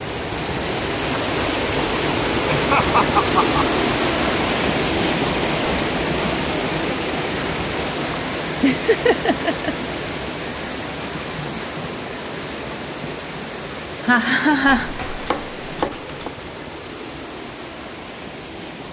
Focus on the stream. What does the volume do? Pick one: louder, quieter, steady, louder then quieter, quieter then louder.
quieter.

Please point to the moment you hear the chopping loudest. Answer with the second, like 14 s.
16 s.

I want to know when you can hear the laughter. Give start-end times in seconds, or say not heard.
2.5-3.6, 8.6-9.9, 14.0-14.9.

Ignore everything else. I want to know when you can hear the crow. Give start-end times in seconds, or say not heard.
not heard.